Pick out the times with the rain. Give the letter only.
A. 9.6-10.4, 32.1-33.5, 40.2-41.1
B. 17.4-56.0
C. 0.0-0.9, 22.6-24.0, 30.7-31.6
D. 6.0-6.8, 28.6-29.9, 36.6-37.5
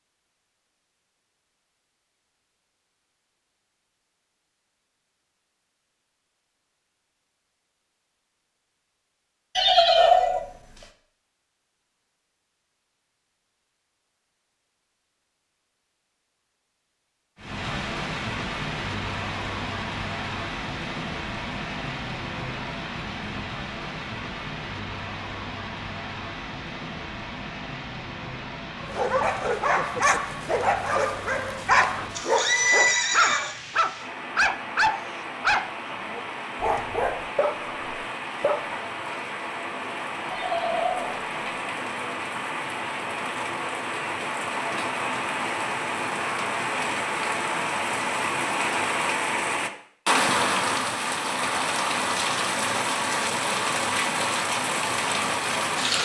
B.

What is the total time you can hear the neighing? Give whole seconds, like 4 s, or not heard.
3 s.